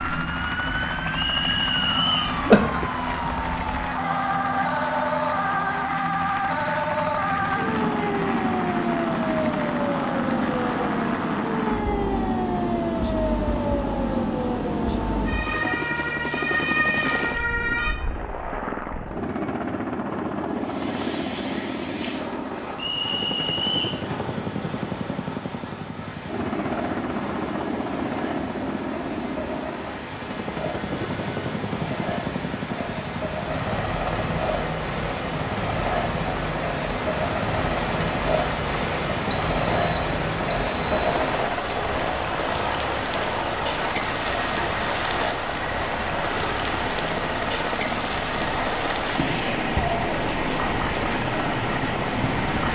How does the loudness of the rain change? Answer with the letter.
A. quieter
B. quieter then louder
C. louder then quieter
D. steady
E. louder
E.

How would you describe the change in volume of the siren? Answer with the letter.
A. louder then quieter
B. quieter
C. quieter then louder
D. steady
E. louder
D.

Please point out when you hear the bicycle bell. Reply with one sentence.
The bicycle bell can't be heard in this clip.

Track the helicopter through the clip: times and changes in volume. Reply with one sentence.
You can hear the helicopter from 0.0 to 52.7 s, at a steady volume.